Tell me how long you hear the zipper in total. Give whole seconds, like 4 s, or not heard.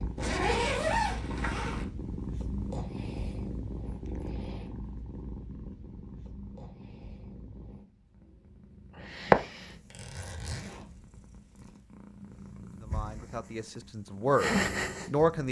4 s.